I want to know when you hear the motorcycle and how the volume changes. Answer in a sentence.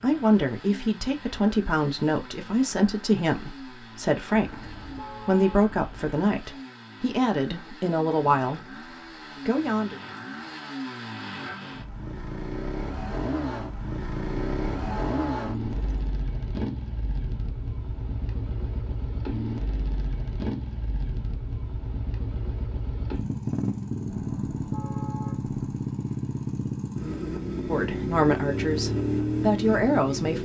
The motorcycle can be heard from 0.0 to 30.3 s, getting louder.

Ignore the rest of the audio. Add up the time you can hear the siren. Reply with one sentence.
You can't hear the siren here.